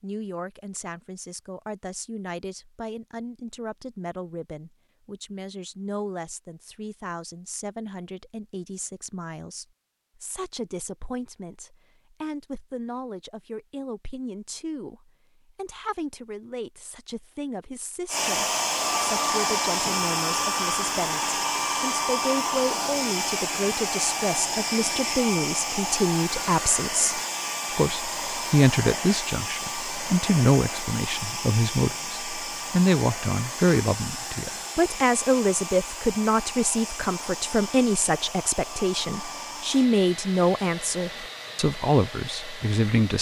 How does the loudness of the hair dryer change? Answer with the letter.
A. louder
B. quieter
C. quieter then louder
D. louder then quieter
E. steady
B.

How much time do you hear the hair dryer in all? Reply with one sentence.
You can hear the hair dryer for 25 seconds altogether.